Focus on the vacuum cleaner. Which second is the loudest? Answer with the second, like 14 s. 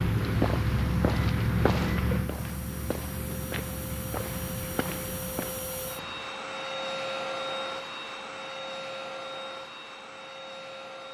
7 s.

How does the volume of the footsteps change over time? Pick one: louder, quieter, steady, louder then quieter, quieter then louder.
quieter.